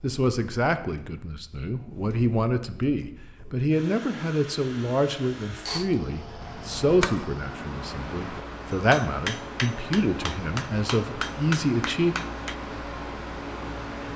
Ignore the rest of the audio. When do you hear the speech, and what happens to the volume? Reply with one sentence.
You can hear the speech from 0.0 to 12.2 s, at a steady volume.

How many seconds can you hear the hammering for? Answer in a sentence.
The hammering can be heard for 7 seconds in total.